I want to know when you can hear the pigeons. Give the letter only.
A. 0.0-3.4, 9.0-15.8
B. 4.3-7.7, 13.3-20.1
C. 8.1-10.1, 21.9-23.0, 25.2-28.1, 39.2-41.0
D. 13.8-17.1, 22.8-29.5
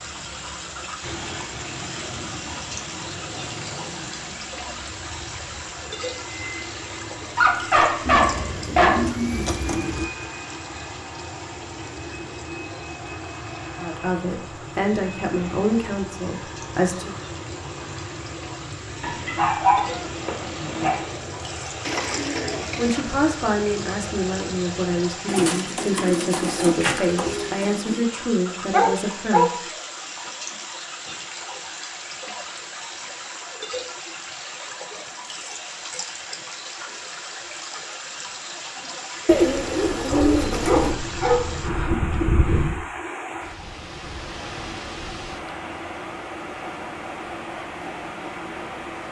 C.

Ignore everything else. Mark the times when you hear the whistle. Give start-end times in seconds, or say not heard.
not heard.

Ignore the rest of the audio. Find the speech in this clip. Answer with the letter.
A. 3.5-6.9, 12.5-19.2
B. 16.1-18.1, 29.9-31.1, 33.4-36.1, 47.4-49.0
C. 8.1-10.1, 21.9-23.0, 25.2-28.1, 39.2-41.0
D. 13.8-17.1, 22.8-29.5
D.